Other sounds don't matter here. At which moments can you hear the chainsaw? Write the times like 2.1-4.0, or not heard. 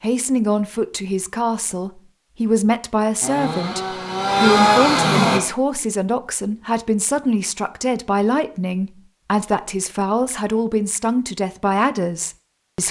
3.2-5.4.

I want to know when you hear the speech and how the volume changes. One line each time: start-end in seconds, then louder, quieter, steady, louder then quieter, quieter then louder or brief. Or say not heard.
0.0-12.8 steady.